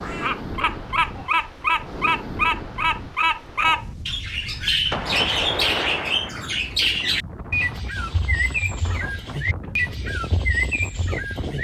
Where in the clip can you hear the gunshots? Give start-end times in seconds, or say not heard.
4.9-6.3.